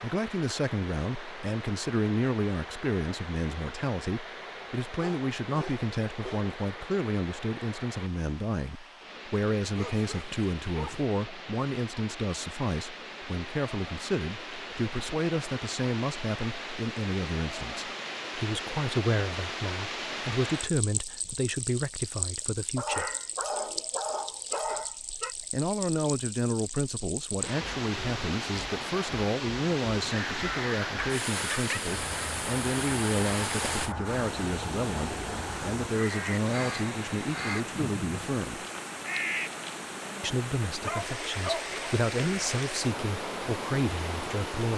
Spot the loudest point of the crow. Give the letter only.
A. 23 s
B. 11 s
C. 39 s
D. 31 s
C.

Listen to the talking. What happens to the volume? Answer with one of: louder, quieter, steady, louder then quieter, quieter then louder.
steady.